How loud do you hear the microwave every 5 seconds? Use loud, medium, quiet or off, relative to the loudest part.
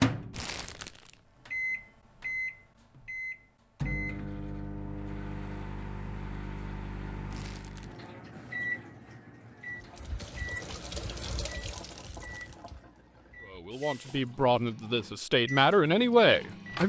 loud, medium, quiet, medium.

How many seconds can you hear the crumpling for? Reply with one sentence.
The crumpling can be heard for 3 seconds in total.